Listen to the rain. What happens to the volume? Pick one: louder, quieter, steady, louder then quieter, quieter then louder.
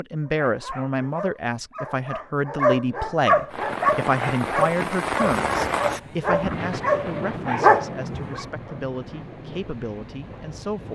quieter.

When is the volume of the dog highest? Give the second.
8 s.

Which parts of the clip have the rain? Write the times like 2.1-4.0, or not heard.
3.5-10.9.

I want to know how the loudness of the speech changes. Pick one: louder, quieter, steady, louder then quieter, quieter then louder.
quieter.